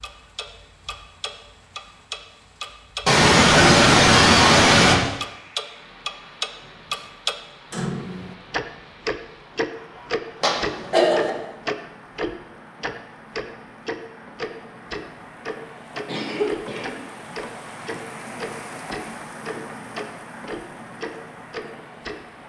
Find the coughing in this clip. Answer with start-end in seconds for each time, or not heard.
3.0-5.0, 10.4-11.3, 16.1-16.9.